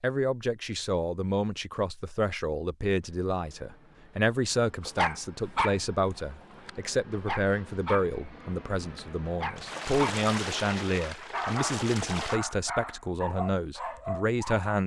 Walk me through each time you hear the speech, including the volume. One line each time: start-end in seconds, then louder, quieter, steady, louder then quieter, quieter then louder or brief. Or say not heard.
0.0-14.8 steady.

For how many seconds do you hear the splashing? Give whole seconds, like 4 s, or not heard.
3 s.